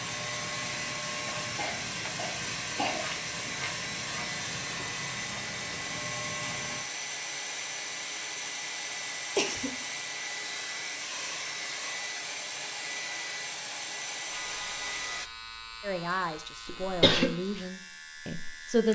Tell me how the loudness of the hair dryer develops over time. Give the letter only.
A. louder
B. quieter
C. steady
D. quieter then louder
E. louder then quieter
C.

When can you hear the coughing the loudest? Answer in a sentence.
The volume of the coughing peaks at 17 seconds.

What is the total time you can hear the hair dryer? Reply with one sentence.
You can hear the hair dryer for 15 seconds altogether.